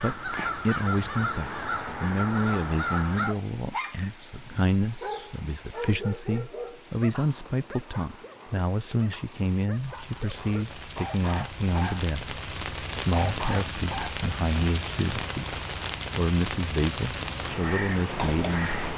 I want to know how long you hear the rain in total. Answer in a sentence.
The rain can be heard for 19 seconds in total.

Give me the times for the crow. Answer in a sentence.
The crow can be heard from 0.0 to 3.4 s and from 17.1 to 18.9 s.